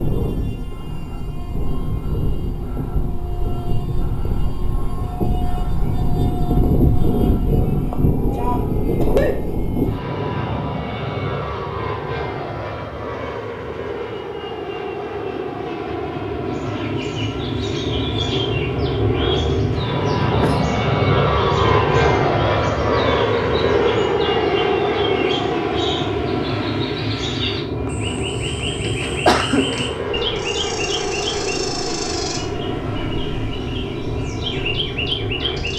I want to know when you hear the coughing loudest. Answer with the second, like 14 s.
29 s.